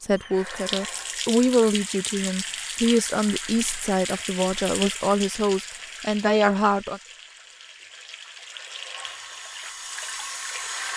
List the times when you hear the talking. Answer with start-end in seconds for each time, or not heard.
0.0-7.0.